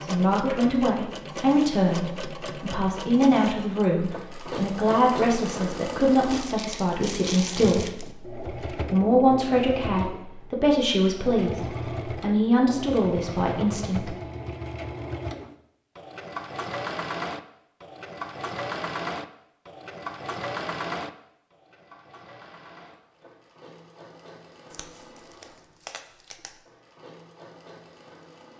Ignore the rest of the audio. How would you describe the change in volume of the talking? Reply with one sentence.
The loudness of the talking stays about the same.